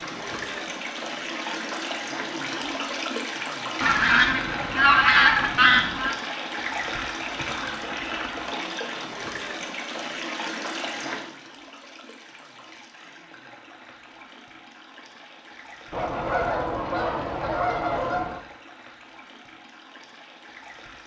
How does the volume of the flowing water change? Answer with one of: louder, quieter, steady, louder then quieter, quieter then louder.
quieter.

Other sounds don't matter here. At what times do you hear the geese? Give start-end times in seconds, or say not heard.
3.8-6.2, 15.9-18.4.